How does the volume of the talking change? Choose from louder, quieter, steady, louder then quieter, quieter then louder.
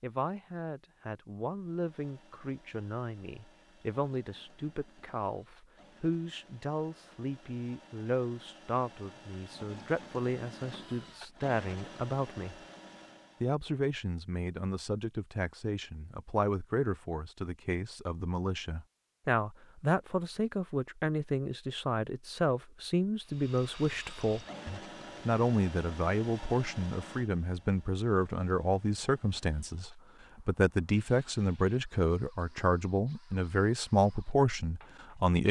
louder.